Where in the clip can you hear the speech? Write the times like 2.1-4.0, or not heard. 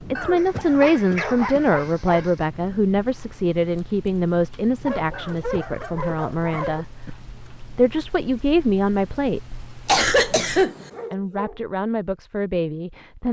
0.1-6.8, 7.7-9.6, 11.1-13.2.